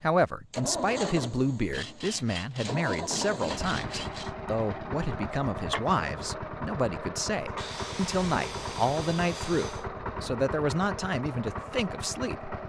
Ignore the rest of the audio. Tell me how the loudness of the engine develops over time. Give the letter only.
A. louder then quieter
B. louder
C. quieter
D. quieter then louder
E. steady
E.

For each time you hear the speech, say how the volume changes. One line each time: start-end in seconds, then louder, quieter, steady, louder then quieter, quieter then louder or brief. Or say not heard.
0.0-12.6 steady.